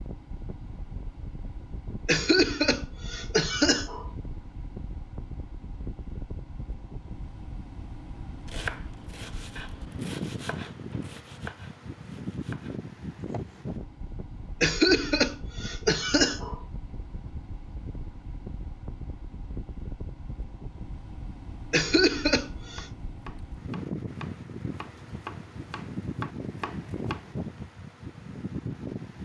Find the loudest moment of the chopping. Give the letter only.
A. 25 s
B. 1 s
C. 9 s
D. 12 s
C.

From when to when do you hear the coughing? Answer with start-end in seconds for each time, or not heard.
2.0-4.1, 14.6-16.6, 21.7-22.9.